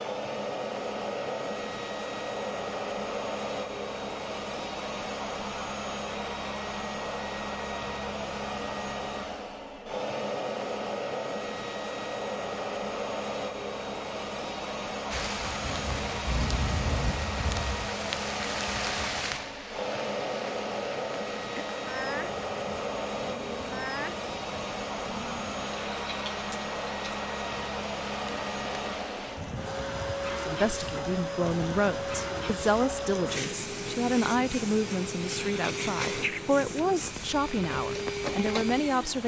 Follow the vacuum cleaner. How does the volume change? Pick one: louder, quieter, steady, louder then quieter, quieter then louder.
steady.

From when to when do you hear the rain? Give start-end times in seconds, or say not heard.
15.1-39.2.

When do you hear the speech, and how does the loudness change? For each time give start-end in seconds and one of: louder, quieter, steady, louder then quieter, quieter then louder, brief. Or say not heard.
30.4-39.2 steady.